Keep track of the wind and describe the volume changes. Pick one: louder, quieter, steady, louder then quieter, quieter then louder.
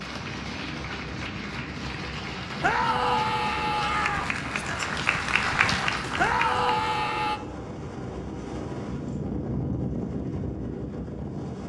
louder.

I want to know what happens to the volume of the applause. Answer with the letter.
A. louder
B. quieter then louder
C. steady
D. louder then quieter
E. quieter
A.